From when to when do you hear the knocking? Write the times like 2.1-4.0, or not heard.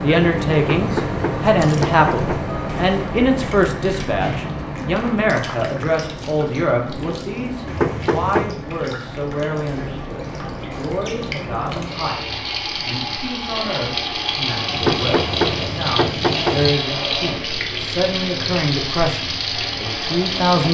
0.6-2.5, 7.7-8.6, 14.7-16.7.